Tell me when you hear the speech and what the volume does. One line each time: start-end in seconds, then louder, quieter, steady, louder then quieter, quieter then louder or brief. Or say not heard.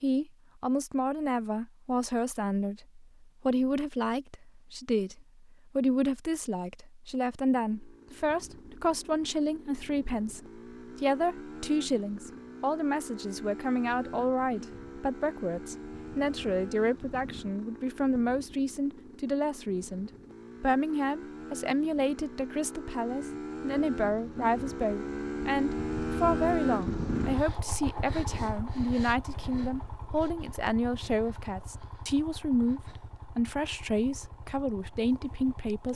0.0-35.9 steady.